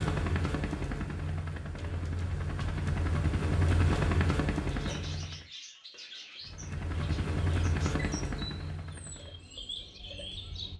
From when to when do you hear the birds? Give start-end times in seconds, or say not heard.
4.7-10.7.